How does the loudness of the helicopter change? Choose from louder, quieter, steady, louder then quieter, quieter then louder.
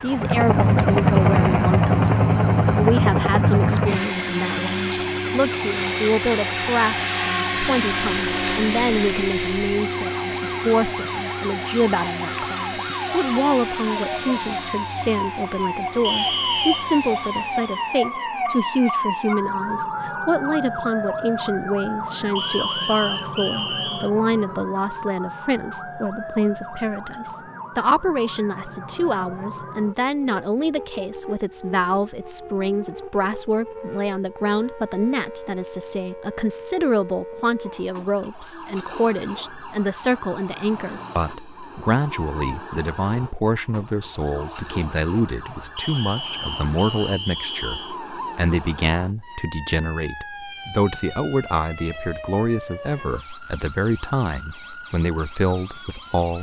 quieter.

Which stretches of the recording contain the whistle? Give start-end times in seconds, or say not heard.
16.0-16.9, 22.4-24.1, 45.8-48.0.